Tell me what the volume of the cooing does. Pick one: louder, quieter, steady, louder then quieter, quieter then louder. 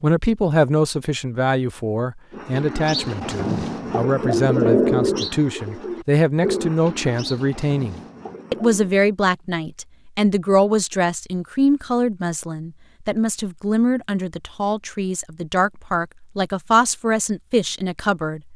louder then quieter.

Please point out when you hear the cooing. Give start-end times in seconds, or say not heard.
2.3-8.9.